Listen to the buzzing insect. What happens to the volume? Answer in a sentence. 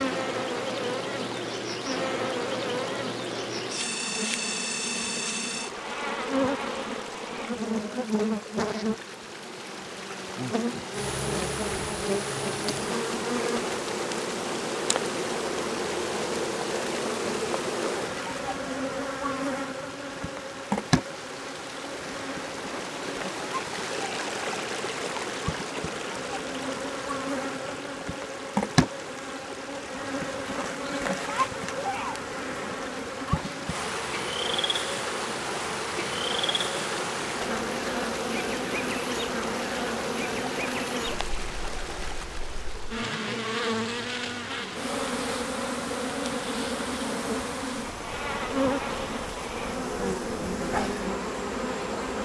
The loudness of the buzzing insect stays about the same.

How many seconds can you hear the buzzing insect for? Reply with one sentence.
The buzzing insect can be heard for 52 seconds in total.